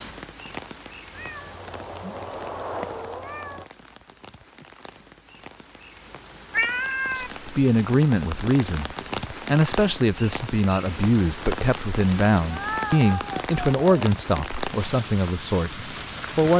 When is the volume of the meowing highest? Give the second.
7 s.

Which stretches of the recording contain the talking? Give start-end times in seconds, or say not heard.
7.1-16.5.